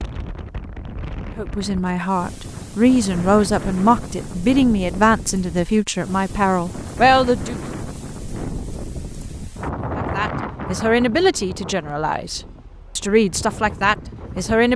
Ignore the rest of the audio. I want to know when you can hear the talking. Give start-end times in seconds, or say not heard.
1.4-7.6, 9.9-14.7.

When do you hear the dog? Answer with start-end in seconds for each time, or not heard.
not heard.